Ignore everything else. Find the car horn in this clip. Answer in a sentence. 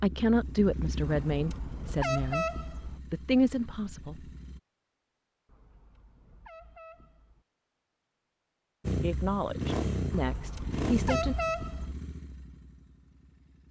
The car horn can be heard from 1.1 to 3.0 s, from 5.5 to 7.5 s and from 10.1 to 11.9 s.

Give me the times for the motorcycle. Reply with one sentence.
You can hear the motorcycle from 0.0 to 4.6 s and from 8.8 to 13.6 s.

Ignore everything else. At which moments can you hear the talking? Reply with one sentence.
You can hear the talking from 0.0 to 2.5 s, from 3.1 to 4.3 s and from 9.0 to 11.3 s.